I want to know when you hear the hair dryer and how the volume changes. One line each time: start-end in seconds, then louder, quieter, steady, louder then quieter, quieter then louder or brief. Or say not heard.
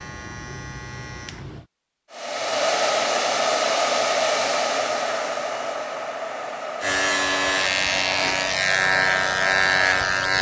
2.1-10.3 quieter.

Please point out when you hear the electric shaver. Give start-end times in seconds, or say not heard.
0.0-1.6, 6.8-10.3.